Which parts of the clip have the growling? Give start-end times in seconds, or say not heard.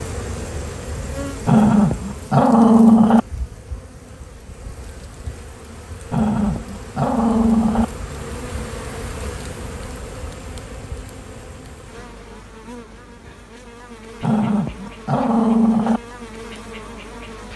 1.4-3.2, 6.1-7.8, 14.2-16.0.